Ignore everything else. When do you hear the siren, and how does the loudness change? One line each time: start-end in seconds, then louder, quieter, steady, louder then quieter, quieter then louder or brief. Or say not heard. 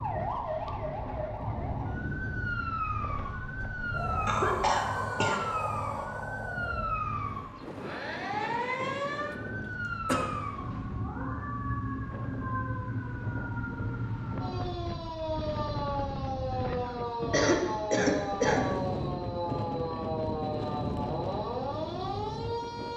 0.0-22.9 steady.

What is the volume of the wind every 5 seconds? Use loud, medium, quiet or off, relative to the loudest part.
loud, loud, medium, loud, loud.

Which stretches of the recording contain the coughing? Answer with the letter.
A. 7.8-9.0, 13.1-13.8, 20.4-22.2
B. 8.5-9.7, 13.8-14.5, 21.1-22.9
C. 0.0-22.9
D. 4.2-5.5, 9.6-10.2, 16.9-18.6
D.